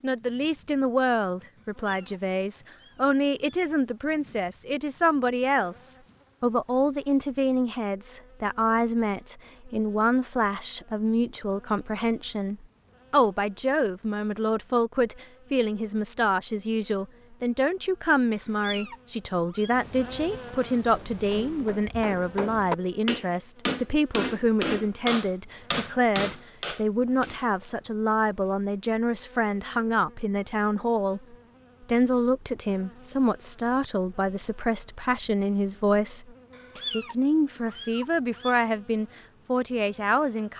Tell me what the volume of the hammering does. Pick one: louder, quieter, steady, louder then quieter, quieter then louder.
louder.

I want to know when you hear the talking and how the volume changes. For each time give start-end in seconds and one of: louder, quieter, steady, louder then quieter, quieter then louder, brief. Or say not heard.
0.0-40.5 steady.